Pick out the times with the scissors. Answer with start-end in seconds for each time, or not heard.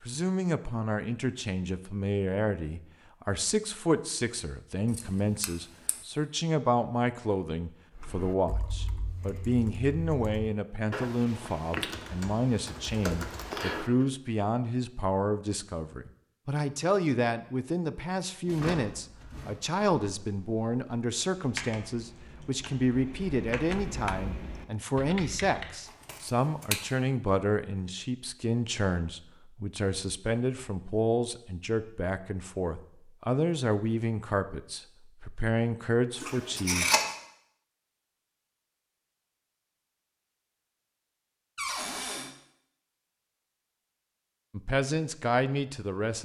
4.9-6.0, 25.9-26.8, 36.2-37.1.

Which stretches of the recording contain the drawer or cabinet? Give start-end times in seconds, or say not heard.
18.4-19.6, 41.5-42.3.